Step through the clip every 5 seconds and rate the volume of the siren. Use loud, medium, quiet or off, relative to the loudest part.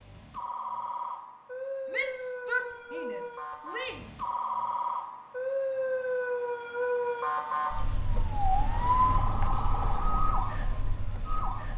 medium, loud, medium.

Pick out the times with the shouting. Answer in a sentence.
You can hear the shouting from 1.9 to 4.0 s.